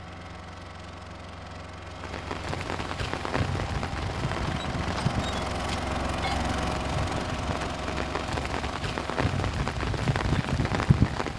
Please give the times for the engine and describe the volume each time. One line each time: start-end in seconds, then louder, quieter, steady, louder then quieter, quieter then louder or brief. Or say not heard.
0.0-11.3 louder then quieter.